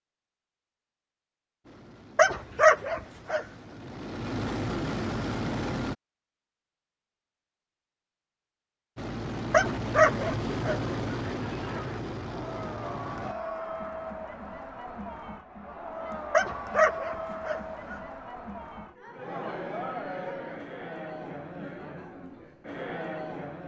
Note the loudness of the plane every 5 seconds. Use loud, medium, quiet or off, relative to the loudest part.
medium, loud, loud, off, off.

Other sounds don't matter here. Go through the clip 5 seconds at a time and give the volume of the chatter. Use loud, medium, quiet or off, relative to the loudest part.
off, off, loud, loud, loud.